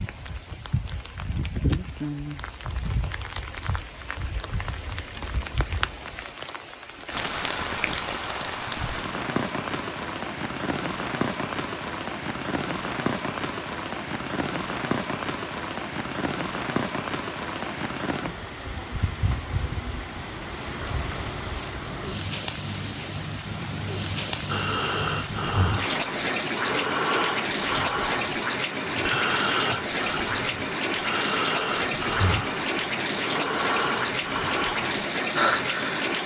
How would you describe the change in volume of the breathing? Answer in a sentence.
The volume of the breathing stays about the same.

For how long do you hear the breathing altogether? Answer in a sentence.
The breathing can be heard for 12 seconds in total.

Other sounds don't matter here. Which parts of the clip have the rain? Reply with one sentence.
You can hear the rain from 0.0 to 36.2 s.